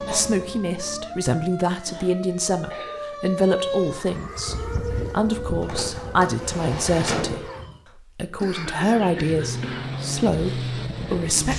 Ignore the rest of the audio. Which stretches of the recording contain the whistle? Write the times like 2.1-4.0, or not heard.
not heard.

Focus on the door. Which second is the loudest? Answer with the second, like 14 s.
7 s.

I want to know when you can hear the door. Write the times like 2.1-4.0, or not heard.
5.6-7.4.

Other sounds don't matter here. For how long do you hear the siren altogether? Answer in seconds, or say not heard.
8 s.